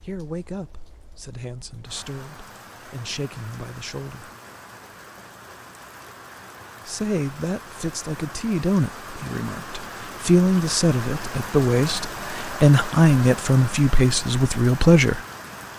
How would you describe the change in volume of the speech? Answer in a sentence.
The volume of the speech goes up.